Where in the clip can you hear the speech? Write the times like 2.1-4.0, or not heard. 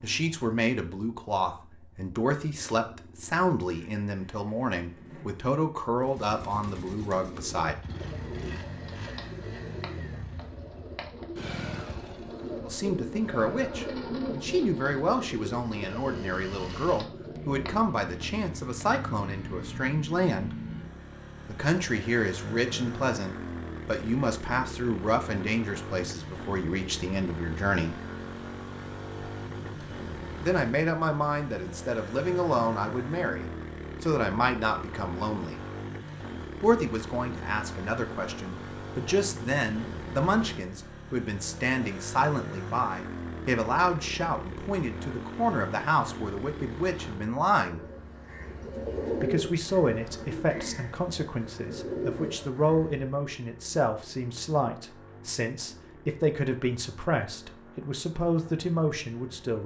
0.0-7.8, 12.7-20.6, 21.4-28.0, 30.4-35.6, 36.6-47.8, 49.1-59.6.